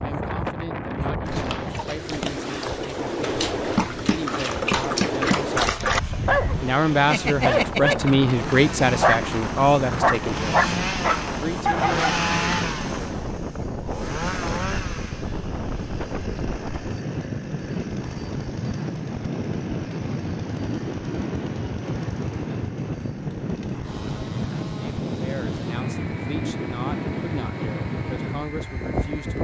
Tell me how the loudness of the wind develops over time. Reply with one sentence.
The loudness of the wind stays about the same.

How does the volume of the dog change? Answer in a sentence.
The loudness of the dog goes up.